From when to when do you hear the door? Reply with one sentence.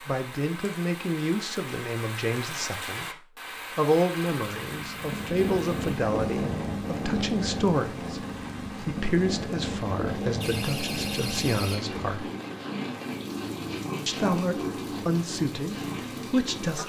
The door can be heard from 10.4 to 11.9 s.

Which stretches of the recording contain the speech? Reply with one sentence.
You can hear the speech from 0.1 to 12.3 s and from 14.1 to 16.8 s.